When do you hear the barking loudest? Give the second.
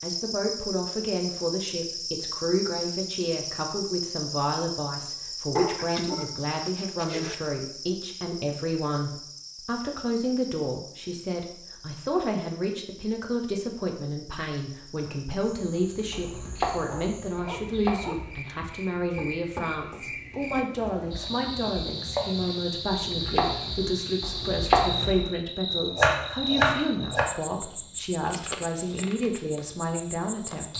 6 s.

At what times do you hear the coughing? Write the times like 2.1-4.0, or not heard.
not heard.